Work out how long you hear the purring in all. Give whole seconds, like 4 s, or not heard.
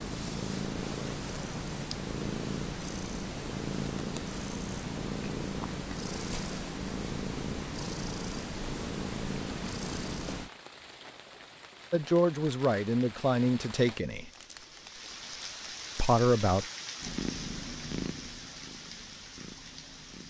14 s.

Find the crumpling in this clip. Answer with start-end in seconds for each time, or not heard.
14.3-16.0.